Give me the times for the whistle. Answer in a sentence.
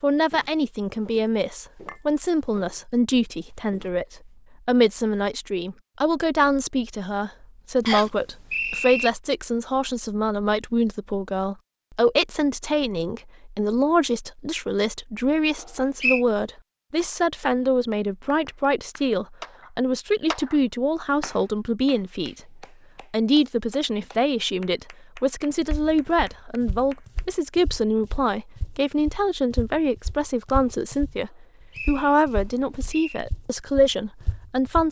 The whistle can be heard from 7.8 to 9.1 s, from 15.6 to 16.2 s and from 31.3 to 33.2 s.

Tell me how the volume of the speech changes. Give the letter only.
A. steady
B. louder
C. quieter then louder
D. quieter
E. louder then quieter
A.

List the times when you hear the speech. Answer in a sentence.
The speech can be heard from 0.0 to 34.8 s.